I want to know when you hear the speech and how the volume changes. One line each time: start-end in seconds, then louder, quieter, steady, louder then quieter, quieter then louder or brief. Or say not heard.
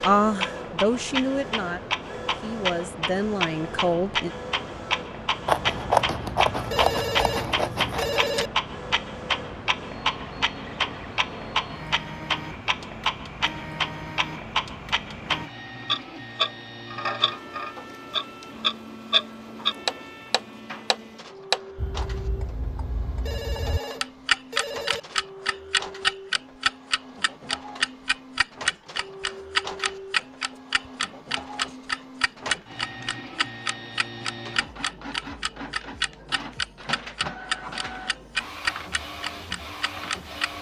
0.0-4.3 quieter then louder.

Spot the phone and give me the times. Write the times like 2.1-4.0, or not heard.
6.7-8.5, 23.2-25.0.